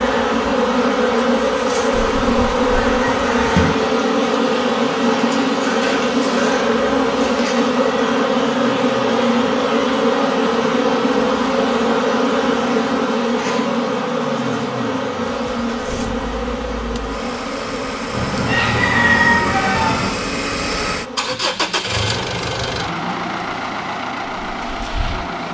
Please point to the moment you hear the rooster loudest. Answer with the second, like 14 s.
19 s.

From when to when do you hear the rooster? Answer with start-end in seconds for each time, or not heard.
1.9-3.8, 18.1-20.1.